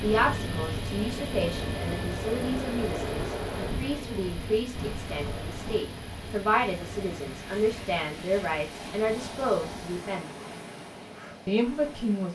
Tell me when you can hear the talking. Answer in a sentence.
The talking can be heard from 0.0 to 10.3 s and from 11.4 to 12.2 s.